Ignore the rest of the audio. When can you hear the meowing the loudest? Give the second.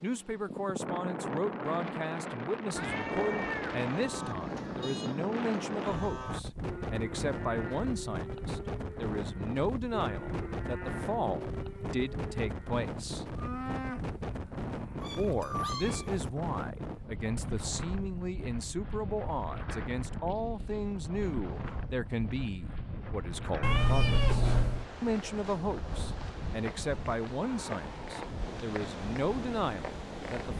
24 s.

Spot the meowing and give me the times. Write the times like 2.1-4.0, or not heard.
2.7-4.8, 15.0-16.2, 23.6-24.9.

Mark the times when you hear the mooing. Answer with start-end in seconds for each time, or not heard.
3.9-15.1.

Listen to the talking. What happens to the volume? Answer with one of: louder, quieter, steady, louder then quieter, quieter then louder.
steady.